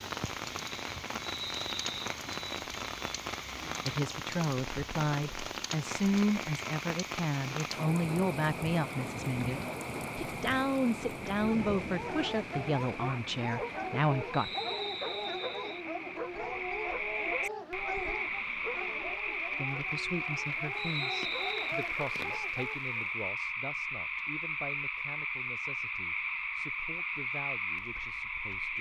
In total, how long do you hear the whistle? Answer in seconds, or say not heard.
3 s.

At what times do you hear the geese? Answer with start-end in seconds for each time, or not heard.
not heard.